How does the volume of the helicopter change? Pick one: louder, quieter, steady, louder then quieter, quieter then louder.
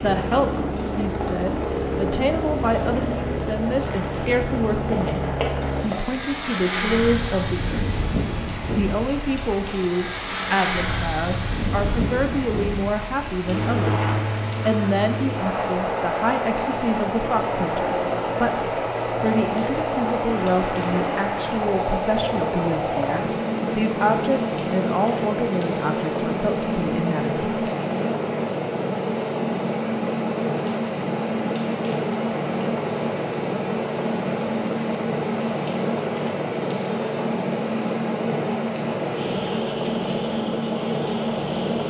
steady.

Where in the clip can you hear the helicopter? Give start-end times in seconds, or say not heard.
0.0-41.8.